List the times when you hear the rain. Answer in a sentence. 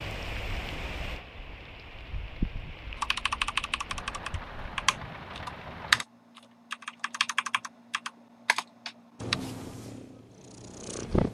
You can hear the rain from 0.0 to 6.0 s.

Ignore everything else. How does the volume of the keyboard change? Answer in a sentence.
The volume of the keyboard goes up, then down.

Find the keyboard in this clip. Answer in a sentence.
You can hear the keyboard from 3.0 to 9.3 s.